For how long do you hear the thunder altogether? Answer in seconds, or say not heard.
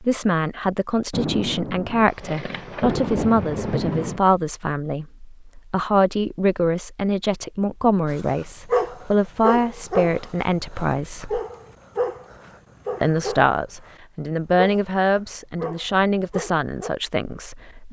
3 s.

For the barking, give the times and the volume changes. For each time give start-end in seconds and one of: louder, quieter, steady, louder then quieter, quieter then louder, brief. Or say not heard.
8.1-13.9 quieter
14.6-16.9 brief.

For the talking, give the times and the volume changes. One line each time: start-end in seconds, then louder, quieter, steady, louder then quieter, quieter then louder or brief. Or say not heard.
0.0-11.4 steady
13.0-17.8 quieter.